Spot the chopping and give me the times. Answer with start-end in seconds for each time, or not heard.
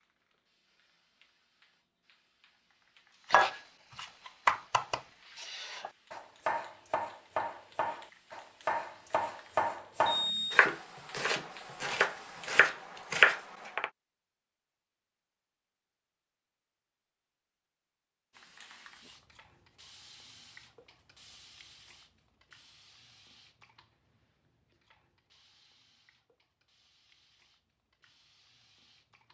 3.3-13.9.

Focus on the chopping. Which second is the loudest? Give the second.
13 s.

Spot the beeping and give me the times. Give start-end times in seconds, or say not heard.
10.1-10.6.